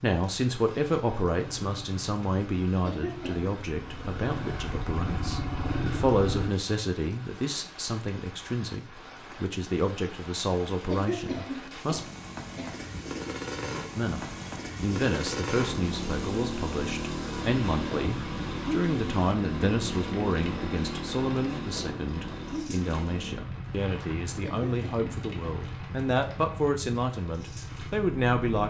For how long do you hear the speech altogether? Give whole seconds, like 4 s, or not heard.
27 s.